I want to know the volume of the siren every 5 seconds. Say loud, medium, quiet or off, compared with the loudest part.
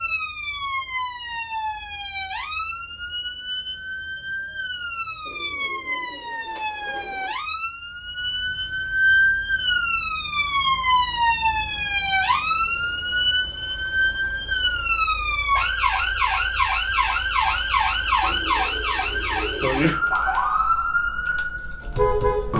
medium, loud, loud, loud, loud.